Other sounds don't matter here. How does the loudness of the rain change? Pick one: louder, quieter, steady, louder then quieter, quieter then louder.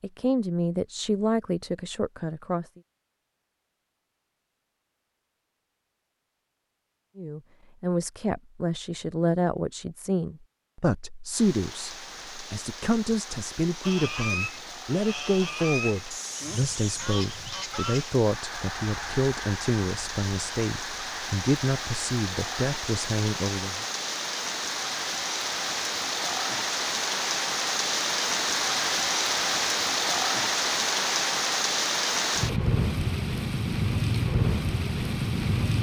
louder.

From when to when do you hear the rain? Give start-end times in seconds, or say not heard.
11.3-35.7.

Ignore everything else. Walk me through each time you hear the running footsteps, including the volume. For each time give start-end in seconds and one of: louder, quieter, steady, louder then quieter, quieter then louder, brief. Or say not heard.
not heard.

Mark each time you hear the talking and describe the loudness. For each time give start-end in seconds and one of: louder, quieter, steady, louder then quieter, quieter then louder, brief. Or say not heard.
0.0-2.6 brief
7.2-23.9 steady.